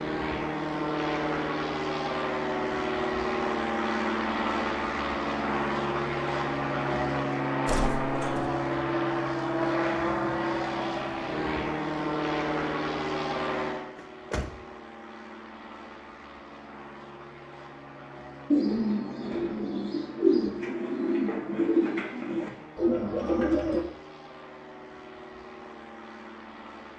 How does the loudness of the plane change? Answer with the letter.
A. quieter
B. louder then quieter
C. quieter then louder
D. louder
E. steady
A.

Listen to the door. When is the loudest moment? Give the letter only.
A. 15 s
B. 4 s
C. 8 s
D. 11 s
C.